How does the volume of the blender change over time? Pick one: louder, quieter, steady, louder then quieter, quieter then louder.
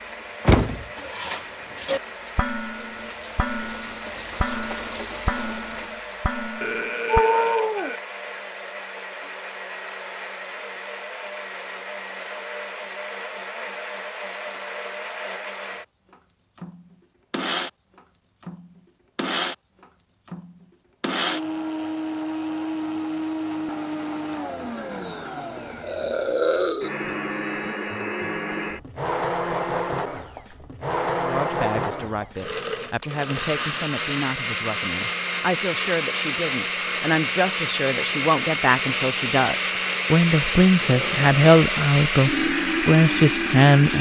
louder.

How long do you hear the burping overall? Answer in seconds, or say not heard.
4 s.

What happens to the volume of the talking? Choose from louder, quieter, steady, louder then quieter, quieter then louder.
louder.